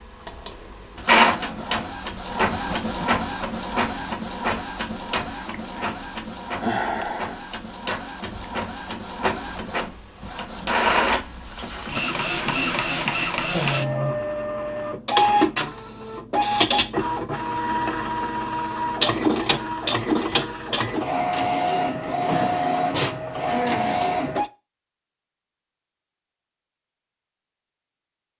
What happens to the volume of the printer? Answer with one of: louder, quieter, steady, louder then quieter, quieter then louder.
quieter then louder.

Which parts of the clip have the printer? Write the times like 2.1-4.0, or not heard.
0.0-24.5.